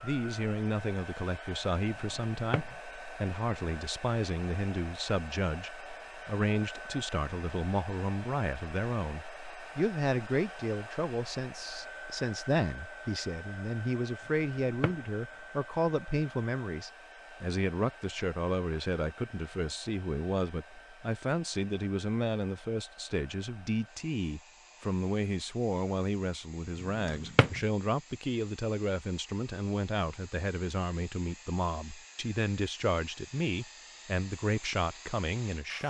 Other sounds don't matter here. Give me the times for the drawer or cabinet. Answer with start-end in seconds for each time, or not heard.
1.9-2.8, 14.2-15.1, 26.8-27.6.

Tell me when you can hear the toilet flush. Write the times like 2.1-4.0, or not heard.
not heard.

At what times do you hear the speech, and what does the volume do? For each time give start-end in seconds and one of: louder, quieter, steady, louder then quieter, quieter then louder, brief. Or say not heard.
0.0-35.8 steady.